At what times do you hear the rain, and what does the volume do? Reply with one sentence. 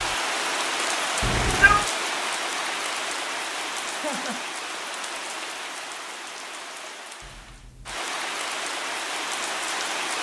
You can hear the rain from 0.0 to 10.1 s, getting quieter then louder.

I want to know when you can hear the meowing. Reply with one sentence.
You can hear the meowing from 1.2 to 1.9 s.